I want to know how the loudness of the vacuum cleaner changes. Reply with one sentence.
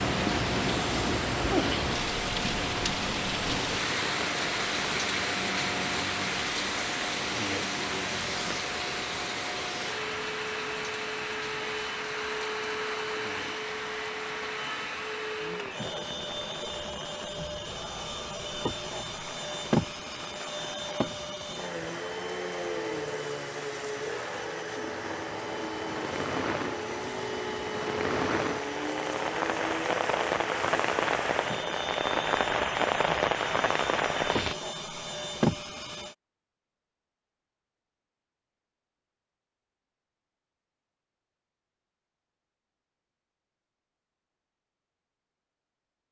The loudness of the vacuum cleaner stays about the same.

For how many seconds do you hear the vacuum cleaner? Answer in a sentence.
You can hear the vacuum cleaner for 36 seconds altogether.